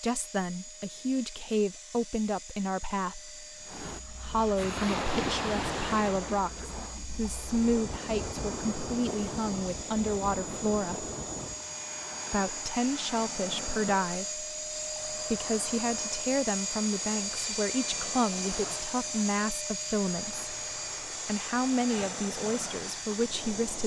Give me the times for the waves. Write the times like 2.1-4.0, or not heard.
3.6-23.8.